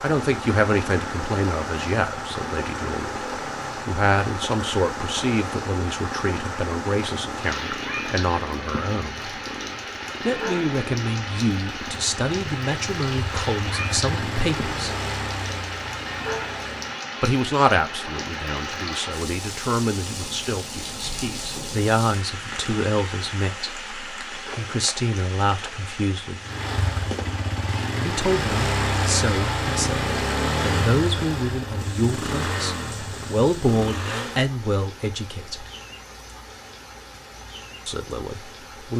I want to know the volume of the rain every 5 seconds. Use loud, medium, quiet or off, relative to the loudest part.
loud, loud, loud, loud, loud, medium, medium, medium.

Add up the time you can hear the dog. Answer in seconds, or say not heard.
not heard.